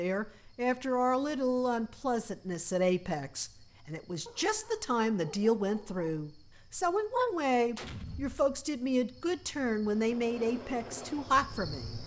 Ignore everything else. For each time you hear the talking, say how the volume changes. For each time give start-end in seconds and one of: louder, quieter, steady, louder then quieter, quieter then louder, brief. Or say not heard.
0.0-12.0 steady.